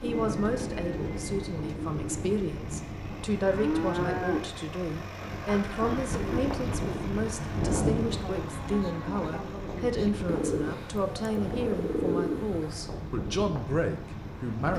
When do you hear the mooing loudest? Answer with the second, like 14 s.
4 s.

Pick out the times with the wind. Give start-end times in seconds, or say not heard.
0.0-14.7.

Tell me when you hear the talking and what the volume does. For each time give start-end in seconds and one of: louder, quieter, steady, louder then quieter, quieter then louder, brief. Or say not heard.
0.0-14.7 steady.